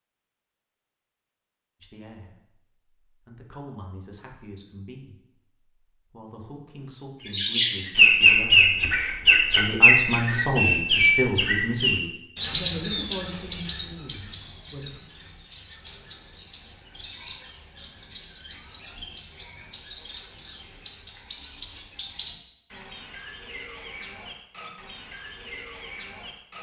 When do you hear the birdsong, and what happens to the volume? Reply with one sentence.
The birdsong can be heard from 7.3 to 26.5 s, getting quieter.